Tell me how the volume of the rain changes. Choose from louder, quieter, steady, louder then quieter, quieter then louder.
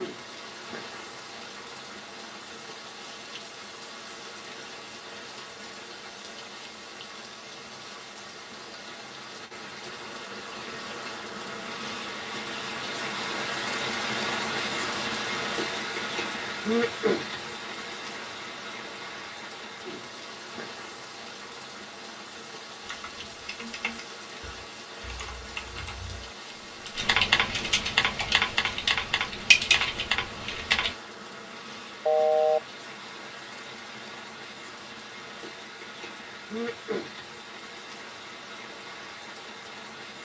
louder then quieter.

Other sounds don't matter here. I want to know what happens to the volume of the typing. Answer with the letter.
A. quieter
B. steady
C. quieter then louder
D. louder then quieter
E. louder
E.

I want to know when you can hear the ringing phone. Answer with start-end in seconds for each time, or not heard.
32.0-32.6.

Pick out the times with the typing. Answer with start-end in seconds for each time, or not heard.
22.8-30.9.